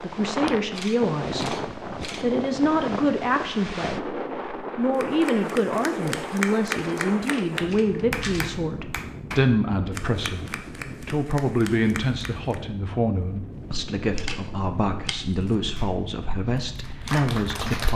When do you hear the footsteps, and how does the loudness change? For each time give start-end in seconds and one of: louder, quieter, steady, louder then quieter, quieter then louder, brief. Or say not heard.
not heard.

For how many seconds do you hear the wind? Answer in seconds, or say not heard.
18 s.